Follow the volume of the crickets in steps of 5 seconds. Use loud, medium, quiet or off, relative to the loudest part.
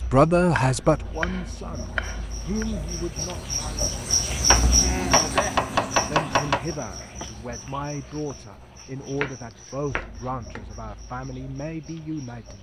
loud, medium, quiet.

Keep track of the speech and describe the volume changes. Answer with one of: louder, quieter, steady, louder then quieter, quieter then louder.
quieter.